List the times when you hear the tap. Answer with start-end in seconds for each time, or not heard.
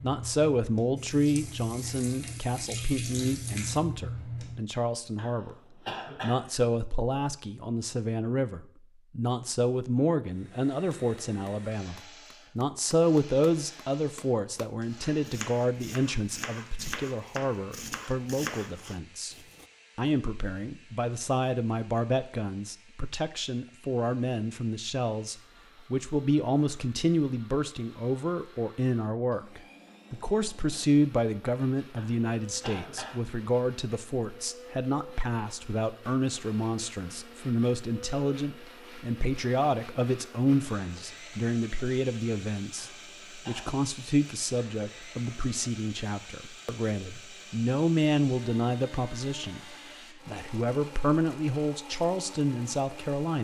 0.0-4.6.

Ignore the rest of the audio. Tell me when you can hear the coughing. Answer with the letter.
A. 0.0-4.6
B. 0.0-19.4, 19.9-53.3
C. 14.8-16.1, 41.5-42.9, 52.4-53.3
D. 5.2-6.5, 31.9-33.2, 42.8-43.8
D.